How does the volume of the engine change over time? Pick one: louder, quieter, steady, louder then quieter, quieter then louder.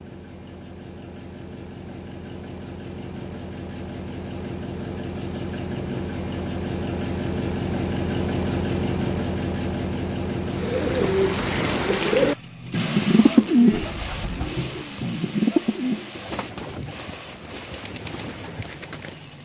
louder then quieter.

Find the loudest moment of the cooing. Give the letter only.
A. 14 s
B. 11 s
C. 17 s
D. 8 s
A.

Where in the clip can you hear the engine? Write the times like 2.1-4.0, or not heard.
0.0-19.4.